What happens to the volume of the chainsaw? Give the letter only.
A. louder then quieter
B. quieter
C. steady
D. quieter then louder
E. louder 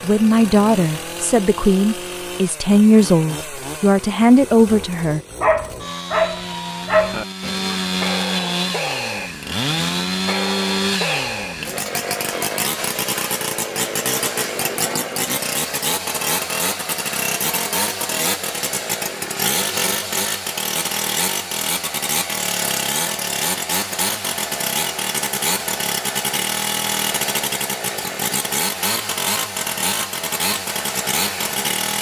E.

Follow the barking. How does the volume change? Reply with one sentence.
The loudness of the barking goes down, then up.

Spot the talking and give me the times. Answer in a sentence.
The talking can be heard from 0.0 to 5.2 s.